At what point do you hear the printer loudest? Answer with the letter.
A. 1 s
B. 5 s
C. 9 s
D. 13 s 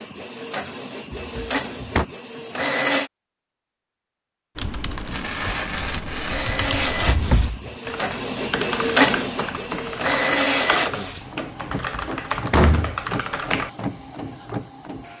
C.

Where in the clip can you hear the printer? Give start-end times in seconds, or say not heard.
0.0-3.1, 6.2-15.1.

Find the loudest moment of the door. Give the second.
13 s.